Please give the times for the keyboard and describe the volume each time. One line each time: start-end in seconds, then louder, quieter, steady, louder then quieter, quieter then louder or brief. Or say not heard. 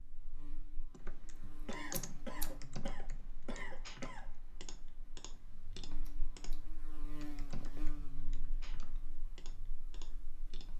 0.9-10.7 quieter.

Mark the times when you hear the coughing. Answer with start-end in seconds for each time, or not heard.
1.6-4.3.